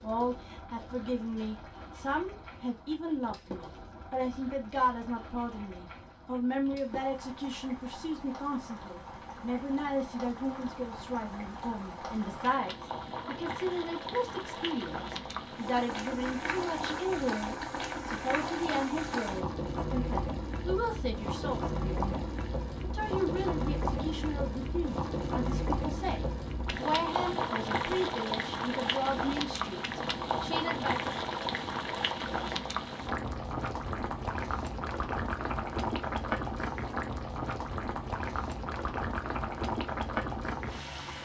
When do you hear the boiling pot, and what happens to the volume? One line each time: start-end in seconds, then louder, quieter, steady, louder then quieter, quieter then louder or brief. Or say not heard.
0.0-41.1 louder.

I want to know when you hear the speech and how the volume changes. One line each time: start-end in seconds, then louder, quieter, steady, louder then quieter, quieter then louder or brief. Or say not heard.
0.0-31.1 steady.